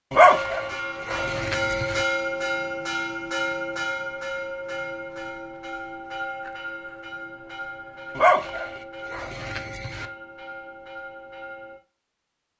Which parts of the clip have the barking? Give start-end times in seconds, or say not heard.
0.1-2.0, 8.2-10.1.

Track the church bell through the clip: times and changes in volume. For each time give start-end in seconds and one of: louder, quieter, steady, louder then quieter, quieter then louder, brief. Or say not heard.
0.1-11.8 quieter.